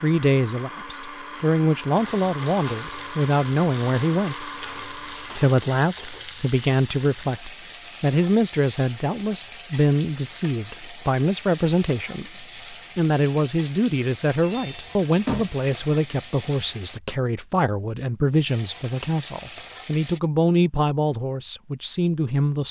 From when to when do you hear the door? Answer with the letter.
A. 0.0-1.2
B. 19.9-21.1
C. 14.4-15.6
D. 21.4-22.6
C.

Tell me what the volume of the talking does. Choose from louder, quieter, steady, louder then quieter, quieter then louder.
steady.